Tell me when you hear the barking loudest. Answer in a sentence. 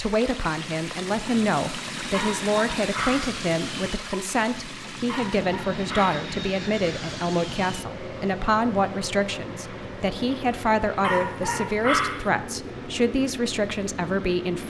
The loudest moment of the barking is at 12 seconds.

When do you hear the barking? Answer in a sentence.
The barking can be heard from 2.1 to 3.4 s, from 5.0 to 6.2 s and from 11.0 to 12.3 s.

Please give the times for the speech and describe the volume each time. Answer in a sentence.
You can hear the speech from 0.0 to 14.6 s, at a steady volume.